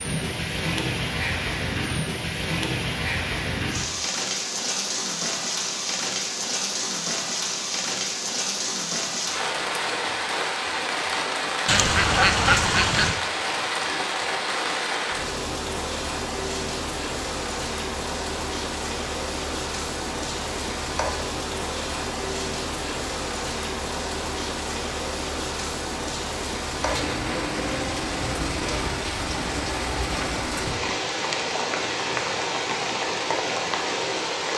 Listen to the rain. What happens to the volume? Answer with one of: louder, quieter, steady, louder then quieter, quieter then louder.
steady.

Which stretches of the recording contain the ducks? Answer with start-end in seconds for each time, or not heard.
11.7-13.2.